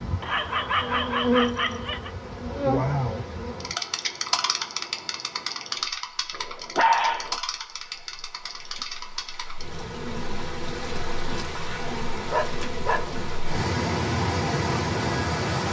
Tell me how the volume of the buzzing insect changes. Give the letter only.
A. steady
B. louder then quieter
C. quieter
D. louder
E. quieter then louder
C.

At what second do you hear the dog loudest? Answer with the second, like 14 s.
7 s.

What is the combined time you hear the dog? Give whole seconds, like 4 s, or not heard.
4 s.